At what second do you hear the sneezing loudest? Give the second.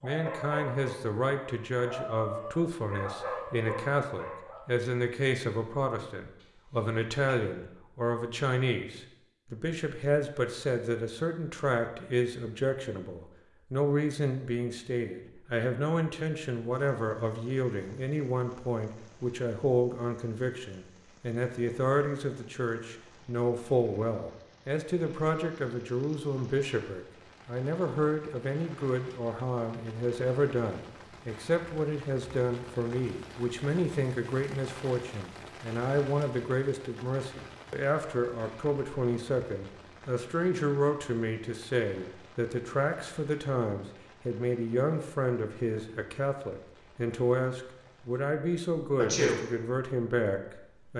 49 s.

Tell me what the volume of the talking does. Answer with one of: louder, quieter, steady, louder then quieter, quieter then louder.
steady.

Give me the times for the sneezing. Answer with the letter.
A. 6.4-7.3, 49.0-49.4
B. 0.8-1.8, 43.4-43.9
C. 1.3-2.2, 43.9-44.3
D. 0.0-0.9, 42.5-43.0
A.